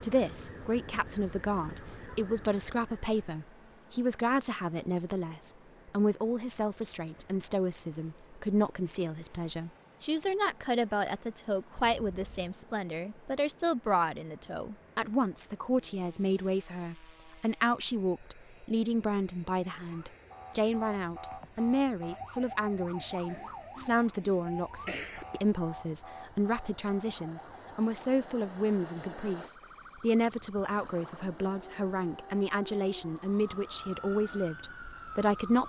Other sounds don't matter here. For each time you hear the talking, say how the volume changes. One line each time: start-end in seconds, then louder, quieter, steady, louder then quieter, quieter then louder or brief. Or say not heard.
0.0-35.6 steady.